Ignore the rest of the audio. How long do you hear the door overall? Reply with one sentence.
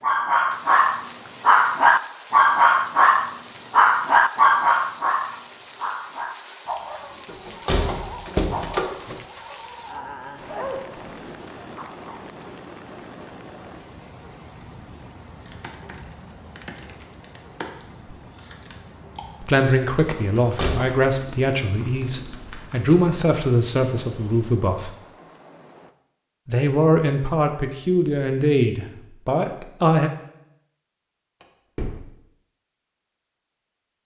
The door can be heard for 3 seconds in total.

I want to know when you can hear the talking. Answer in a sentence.
The talking can be heard from 19.4 to 24.9 s and from 26.4 to 30.1 s.